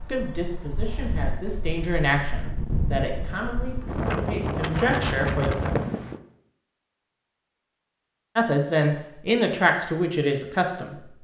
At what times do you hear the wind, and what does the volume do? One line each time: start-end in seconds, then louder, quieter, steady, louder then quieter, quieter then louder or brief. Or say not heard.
0.0-6.2 louder.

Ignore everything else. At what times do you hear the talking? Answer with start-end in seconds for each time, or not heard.
0.1-5.5, 8.3-10.9.